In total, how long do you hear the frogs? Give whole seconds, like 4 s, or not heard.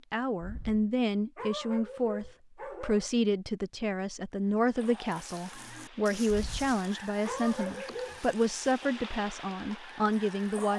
not heard.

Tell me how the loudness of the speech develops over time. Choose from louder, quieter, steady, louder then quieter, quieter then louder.
steady.